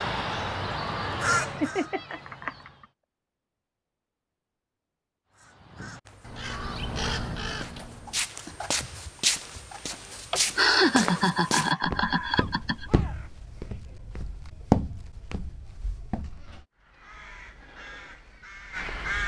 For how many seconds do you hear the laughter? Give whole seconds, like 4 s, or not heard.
4 s.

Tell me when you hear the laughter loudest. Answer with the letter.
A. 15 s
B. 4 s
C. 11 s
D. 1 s
C.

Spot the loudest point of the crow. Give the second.
1 s.